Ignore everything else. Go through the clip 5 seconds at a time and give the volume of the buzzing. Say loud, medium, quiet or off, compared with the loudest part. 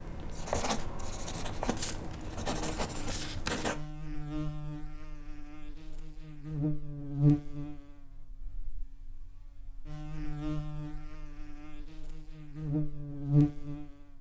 medium, loud, loud.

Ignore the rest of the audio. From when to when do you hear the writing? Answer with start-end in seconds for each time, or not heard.
0.0-3.8.